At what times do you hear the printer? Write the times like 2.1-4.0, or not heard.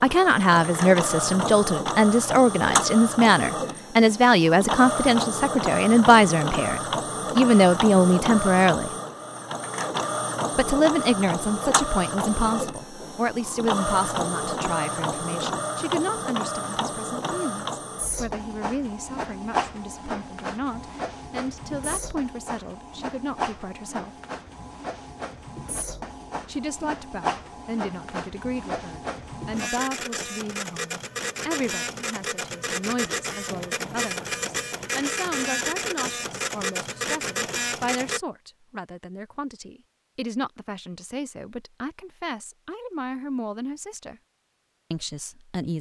0.0-38.2.